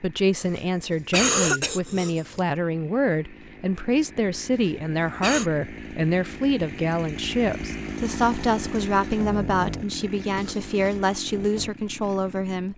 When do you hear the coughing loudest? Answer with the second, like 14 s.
1 s.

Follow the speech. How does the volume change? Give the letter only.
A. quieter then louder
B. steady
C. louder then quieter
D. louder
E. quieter
B.